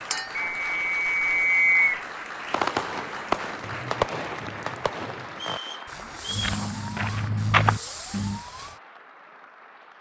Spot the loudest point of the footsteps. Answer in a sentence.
The loudest moment of the footsteps is at 8 seconds.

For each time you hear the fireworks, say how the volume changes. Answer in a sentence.
The fireworks can be heard from 2.5 to 8.8 s, getting quieter.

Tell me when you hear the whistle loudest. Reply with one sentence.
The volume of the whistle peaks at 2 seconds.